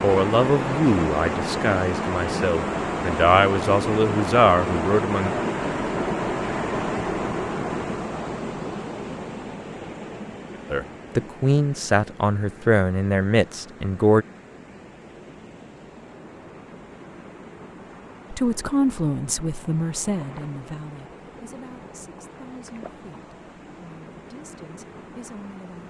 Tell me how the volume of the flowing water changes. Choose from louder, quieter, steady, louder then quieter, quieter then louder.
quieter.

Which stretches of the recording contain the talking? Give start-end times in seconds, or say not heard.
0.0-5.3, 10.7-14.2, 18.3-25.8.